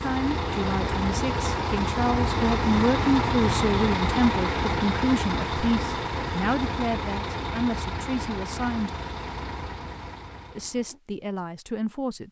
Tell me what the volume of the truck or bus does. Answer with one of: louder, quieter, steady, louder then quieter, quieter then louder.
quieter.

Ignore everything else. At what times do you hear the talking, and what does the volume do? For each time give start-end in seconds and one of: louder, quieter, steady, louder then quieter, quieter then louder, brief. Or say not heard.
0.0-8.9 louder then quieter
10.6-12.2 brief.